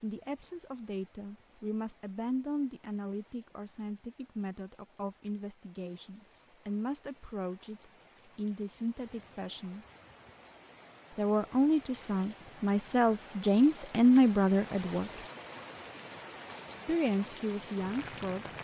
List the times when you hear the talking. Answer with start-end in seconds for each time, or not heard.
0.0-9.8, 11.2-15.2, 16.9-18.6.